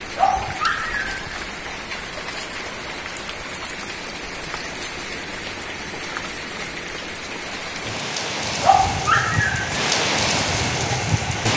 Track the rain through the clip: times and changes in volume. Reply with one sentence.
The rain can be heard from 0.0 to 11.5 s, getting louder.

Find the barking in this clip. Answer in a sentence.
You can hear the barking from 0.1 to 1.4 s and from 8.6 to 9.7 s.